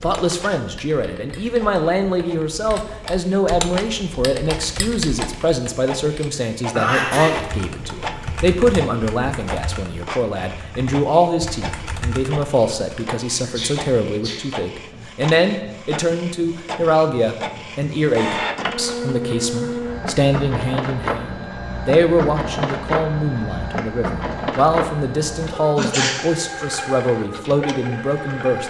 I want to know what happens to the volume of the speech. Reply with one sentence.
The volume of the speech stays about the same.